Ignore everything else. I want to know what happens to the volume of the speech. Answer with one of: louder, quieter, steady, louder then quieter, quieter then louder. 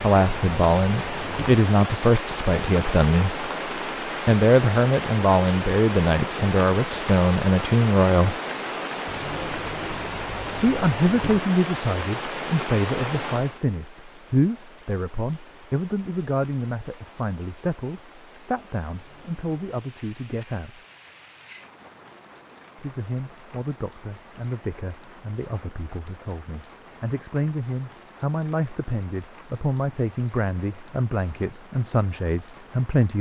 quieter then louder.